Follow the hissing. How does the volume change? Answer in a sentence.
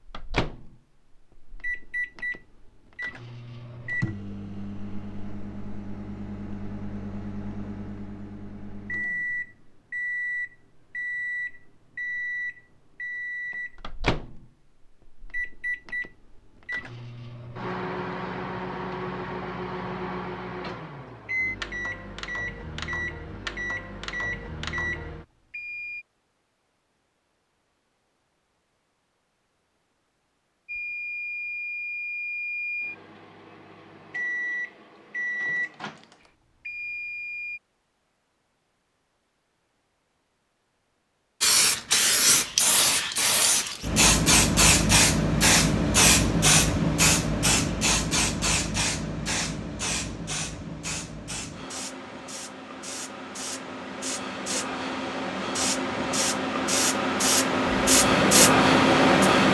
The volume of the hissing goes down, then up.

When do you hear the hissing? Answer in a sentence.
You can hear the hissing from 41.4 to 59.5 s.